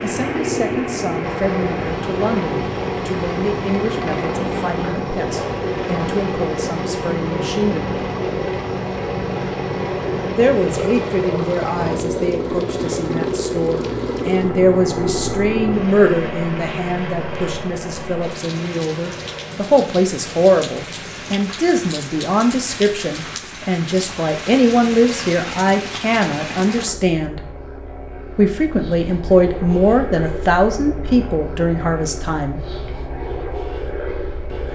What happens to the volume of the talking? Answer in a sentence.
The volume of the talking goes up.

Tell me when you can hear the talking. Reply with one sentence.
The talking can be heard from 0.0 to 8.0 s, from 10.3 to 27.4 s and from 28.4 to 32.6 s.